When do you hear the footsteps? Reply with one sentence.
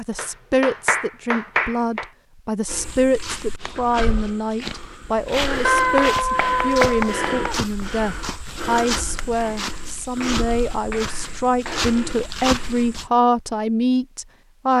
The footsteps can be heard from 2.6 to 13.1 s.